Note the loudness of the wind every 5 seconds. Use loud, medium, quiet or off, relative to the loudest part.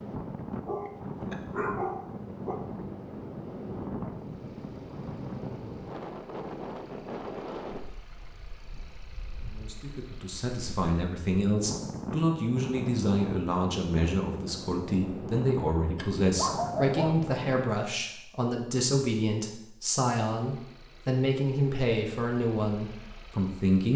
loud, loud, loud, loud, off.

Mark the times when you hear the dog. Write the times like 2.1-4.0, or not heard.
0.5-2.6, 15.9-17.3.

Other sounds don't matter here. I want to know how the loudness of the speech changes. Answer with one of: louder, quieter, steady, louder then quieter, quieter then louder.
steady.